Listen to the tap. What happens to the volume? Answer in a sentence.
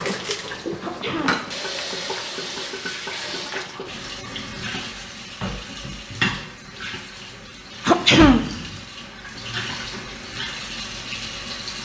The loudness of the tap stays about the same.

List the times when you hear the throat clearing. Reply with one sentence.
You can hear the throat clearing from 0.8 to 1.5 s and from 7.8 to 8.7 s.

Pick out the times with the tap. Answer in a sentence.
The tap can be heard from 0.0 to 11.8 s.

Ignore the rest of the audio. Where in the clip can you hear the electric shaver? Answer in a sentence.
The electric shaver can't be heard in this clip.